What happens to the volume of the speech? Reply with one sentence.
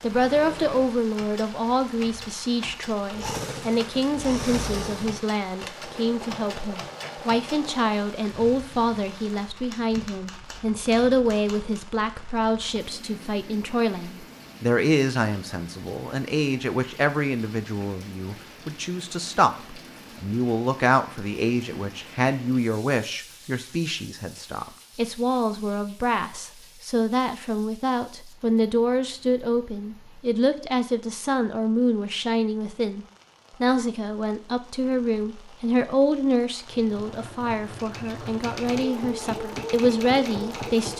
The loudness of the speech stays about the same.